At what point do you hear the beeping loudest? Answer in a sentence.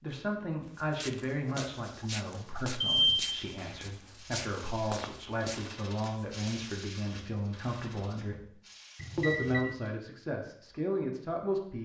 The loudest moment of the beeping is at 3 seconds.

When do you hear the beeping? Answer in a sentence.
You can hear the beeping from 2.8 to 3.7 s and from 8.9 to 9.7 s.